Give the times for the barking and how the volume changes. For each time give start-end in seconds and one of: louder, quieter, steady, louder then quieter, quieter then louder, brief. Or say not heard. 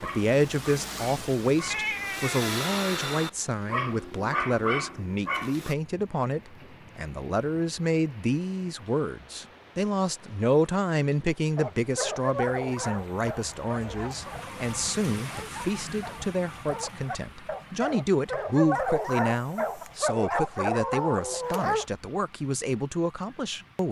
0.0-5.8 louder
11.6-21.9 quieter then louder.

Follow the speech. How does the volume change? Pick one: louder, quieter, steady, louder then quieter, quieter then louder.
steady.